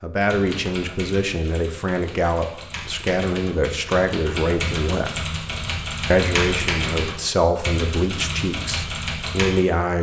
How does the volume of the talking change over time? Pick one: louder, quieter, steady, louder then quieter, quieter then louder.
steady.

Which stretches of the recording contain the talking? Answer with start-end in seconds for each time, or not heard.
0.0-5.2, 6.1-9.9.